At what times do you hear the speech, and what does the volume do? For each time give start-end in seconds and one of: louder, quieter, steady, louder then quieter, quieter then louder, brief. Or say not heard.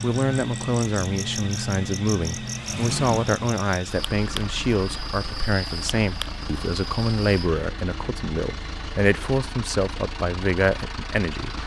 0.0-11.6 steady.